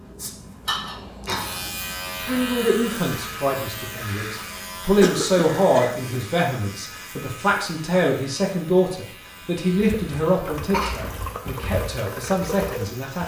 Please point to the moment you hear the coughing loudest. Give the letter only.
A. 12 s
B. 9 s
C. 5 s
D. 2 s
C.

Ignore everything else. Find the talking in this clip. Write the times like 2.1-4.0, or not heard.
2.1-13.2.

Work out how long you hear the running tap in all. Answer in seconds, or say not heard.
3 s.